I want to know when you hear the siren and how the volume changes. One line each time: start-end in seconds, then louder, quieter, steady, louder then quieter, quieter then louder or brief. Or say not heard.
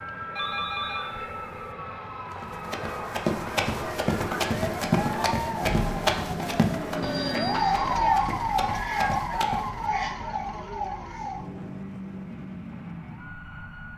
0.0-13.9 louder then quieter.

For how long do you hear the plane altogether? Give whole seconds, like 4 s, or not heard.
14 s.